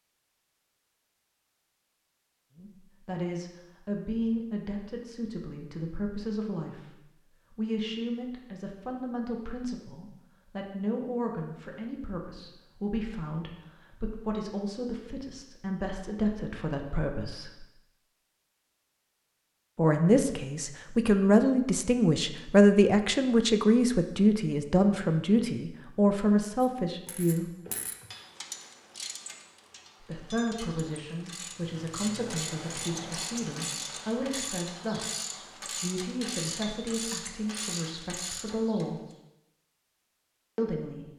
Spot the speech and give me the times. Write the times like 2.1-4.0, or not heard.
2.5-17.6, 19.8-27.5, 30.0-39.0, 40.5-41.1.